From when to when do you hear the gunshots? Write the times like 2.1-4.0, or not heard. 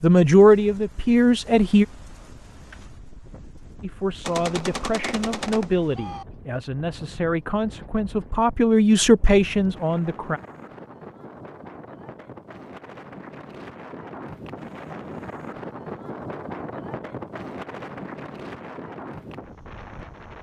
4.2-6.2.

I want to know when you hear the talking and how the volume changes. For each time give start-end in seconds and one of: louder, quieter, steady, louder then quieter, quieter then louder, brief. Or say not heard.
0.0-1.9 brief
3.8-10.4 louder.